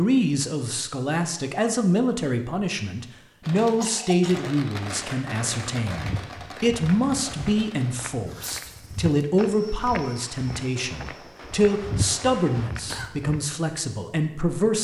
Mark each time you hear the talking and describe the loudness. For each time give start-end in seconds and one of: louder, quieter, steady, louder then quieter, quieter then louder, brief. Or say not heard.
0.0-14.7 steady.